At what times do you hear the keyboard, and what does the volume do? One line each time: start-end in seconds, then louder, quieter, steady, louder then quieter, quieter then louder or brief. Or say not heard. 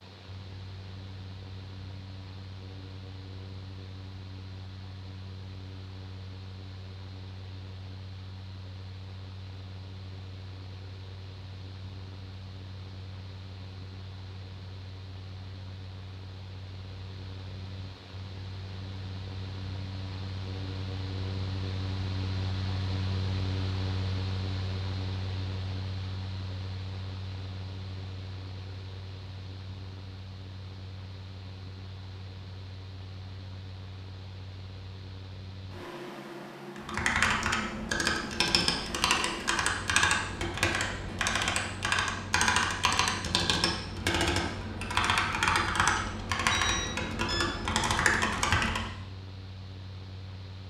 36.8-48.9 steady.